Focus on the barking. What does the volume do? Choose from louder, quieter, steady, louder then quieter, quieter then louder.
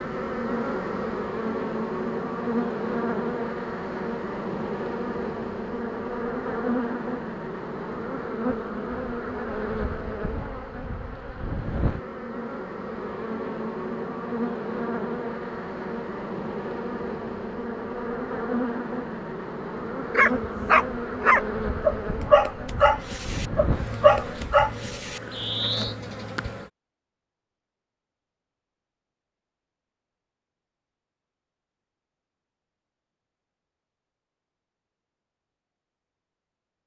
quieter then louder.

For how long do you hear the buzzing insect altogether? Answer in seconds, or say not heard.
27 s.